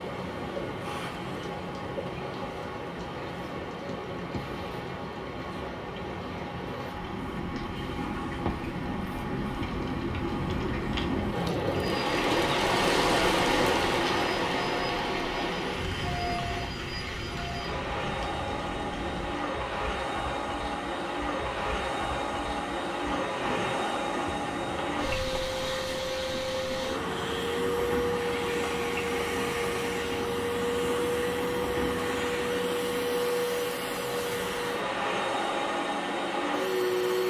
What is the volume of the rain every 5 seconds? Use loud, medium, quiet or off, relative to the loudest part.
medium, medium, loud, medium, medium, medium, medium, medium.